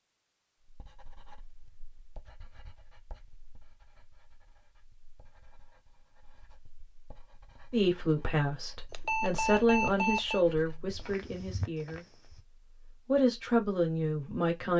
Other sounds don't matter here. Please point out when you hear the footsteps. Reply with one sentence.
The footsteps can be heard from 10.8 to 12.4 s.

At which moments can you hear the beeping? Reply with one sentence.
The beeping can be heard from 8.9 to 10.4 s.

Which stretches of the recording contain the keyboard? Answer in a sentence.
The keyboard can't be heard in this clip.